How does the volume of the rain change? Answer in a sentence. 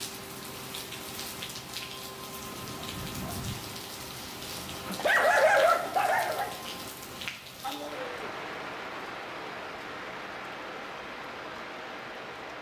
The volume of the rain stays about the same.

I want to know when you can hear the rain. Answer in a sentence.
The rain can be heard from 0.0 to 12.5 s.